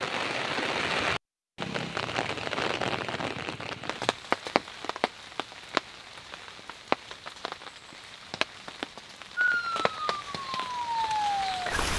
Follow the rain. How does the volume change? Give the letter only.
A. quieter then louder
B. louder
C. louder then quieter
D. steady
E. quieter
E.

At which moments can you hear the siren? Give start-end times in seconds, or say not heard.
9.3-11.9.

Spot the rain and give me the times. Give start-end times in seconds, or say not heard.
0.0-11.9.